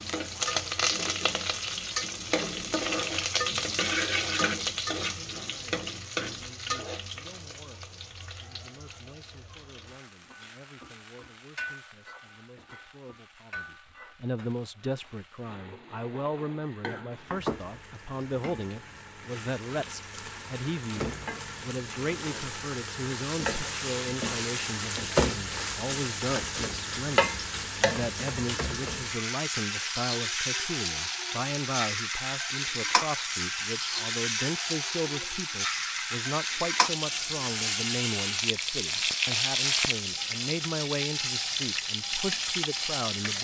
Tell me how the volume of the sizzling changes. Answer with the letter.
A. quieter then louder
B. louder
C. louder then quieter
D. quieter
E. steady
A.